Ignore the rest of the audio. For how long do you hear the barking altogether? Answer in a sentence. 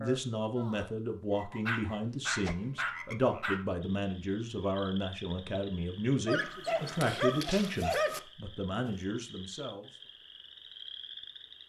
The barking can be heard for 4 seconds in total.